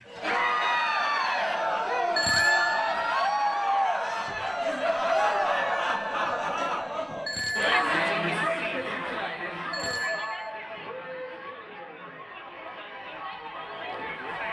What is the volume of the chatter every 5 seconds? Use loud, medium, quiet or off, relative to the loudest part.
loud, loud, medium.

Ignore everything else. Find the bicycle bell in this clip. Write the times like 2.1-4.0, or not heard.
2.1-3.0, 7.2-7.8, 9.7-10.5.